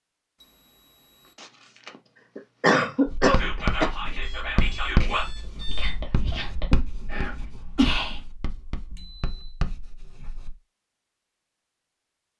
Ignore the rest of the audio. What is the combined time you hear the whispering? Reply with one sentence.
The whispering can be heard for 5 seconds in total.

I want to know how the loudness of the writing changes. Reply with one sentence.
The loudness of the writing goes down.